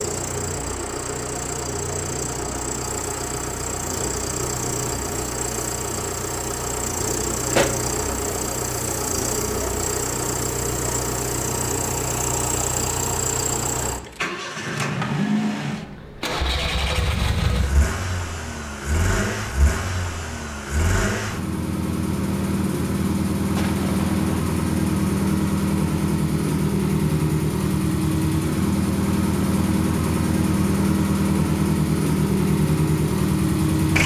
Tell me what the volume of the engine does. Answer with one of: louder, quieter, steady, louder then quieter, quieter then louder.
louder.